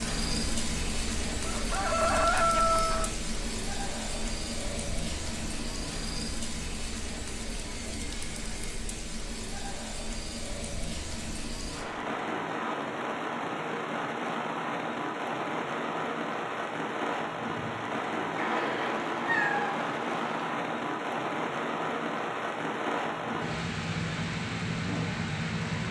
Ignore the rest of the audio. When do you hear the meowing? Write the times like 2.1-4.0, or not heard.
18.4-20.4.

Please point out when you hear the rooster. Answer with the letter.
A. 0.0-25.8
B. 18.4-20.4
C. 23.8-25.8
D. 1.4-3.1
D.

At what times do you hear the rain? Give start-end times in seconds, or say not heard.
0.0-25.8.